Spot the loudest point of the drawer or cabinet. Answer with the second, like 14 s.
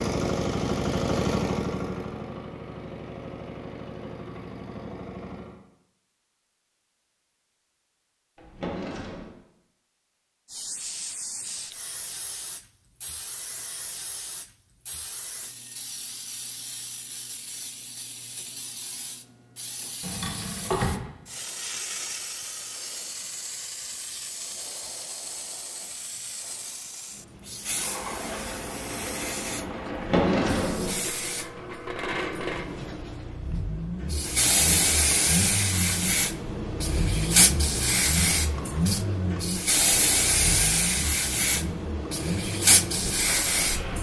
30 s.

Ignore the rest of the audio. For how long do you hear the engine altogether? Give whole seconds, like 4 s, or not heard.
22 s.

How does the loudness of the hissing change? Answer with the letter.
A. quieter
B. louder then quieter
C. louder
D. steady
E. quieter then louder
C.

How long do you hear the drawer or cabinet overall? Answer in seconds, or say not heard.
3 s.